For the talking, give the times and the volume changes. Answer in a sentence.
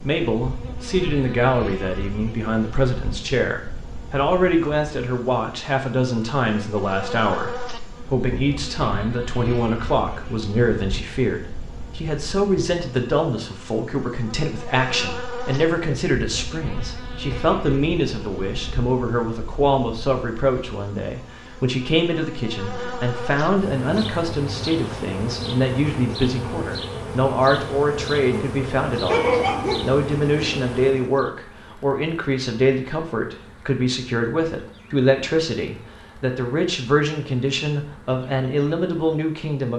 The talking can be heard from 0.0 to 39.7 s, at a steady volume.